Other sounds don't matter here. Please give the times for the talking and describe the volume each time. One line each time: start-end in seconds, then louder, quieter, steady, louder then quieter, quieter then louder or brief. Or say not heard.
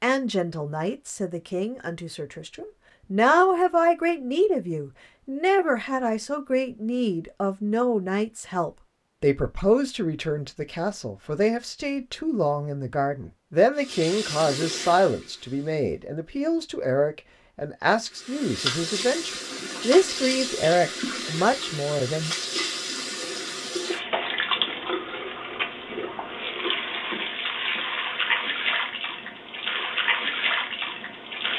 0.0-22.4 steady.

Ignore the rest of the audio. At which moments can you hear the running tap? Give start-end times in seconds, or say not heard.
13.8-15.8, 18.1-31.5.